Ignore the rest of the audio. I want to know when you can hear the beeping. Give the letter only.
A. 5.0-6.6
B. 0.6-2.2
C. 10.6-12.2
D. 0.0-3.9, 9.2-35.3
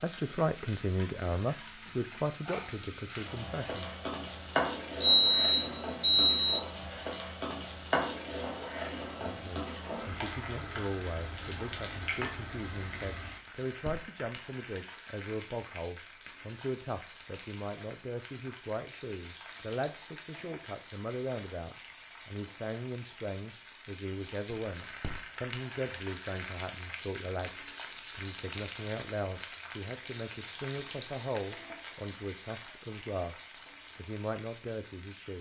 A.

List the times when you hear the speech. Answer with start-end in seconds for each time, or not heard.
0.0-3.9, 9.2-35.3.